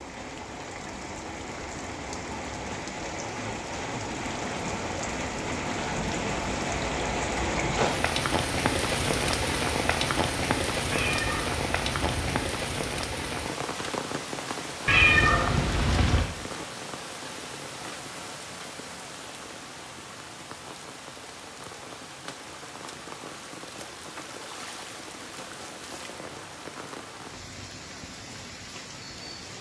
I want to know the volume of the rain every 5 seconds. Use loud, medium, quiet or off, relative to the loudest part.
medium, loud, loud, medium, quiet, quiet.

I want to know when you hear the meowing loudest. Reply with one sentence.
The loudest moment of the meowing is at 15 seconds.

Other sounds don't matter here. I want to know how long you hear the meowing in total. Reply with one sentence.
The meowing can be heard for 3 seconds in total.